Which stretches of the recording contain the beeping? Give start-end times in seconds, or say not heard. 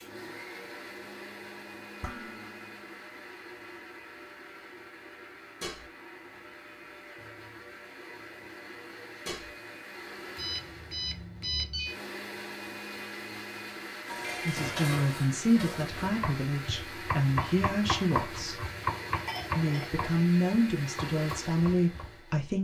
10.3-11.9.